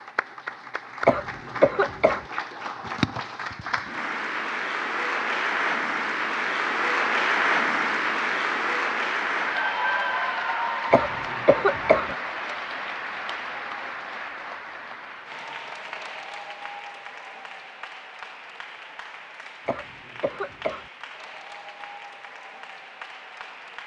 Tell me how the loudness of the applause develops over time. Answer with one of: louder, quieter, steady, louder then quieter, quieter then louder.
louder then quieter.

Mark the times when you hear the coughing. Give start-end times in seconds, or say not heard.
1.1-2.2, 10.9-12.1, 19.6-20.9.